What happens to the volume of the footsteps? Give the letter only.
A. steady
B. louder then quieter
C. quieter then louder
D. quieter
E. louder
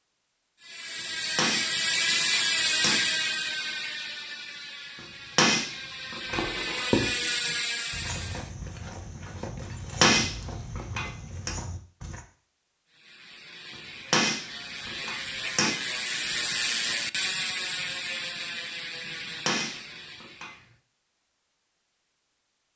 D.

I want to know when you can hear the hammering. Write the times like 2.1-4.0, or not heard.
1.4-3.0, 5.3-6.5, 9.6-11.5, 14.1-15.7, 19.1-20.5.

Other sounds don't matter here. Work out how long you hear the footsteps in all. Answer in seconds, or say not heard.
6 s.